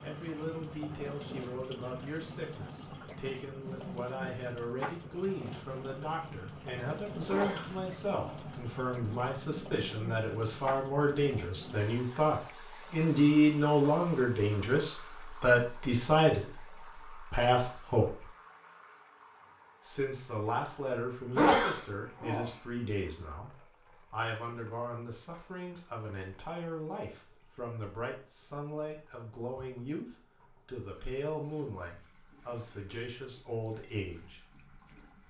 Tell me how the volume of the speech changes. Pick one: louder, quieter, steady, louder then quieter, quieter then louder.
louder then quieter.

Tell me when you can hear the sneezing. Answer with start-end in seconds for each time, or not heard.
7.2-8.4, 21.4-22.5.